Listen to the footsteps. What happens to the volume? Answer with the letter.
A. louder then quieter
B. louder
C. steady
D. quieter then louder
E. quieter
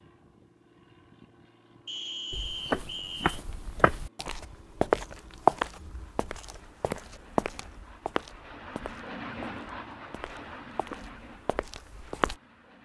A.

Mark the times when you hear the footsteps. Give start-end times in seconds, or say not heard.
2.3-12.3.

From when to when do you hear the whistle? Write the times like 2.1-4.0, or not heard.
1.9-3.4.